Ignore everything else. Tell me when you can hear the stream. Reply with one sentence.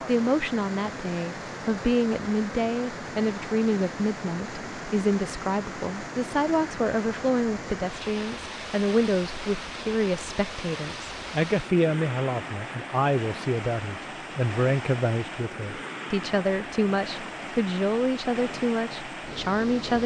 The stream can be heard from 0.0 to 20.0 s.